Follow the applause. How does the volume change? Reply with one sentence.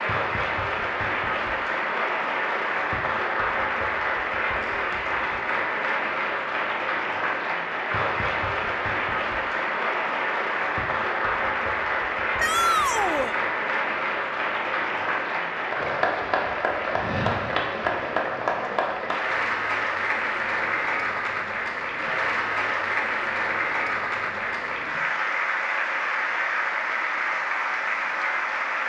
The volume of the applause stays about the same.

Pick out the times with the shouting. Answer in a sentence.
The shouting can be heard from 12.3 to 13.3 s.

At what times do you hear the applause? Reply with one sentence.
The applause can be heard from 0.0 to 28.8 s.